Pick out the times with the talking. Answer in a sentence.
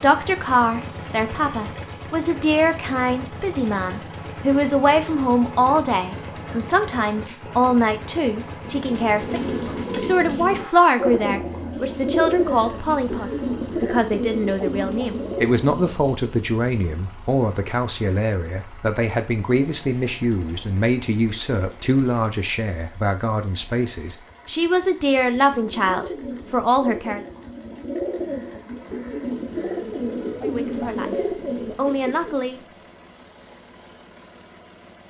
The talking can be heard from 0.0 to 27.2 s and from 30.4 to 32.6 s.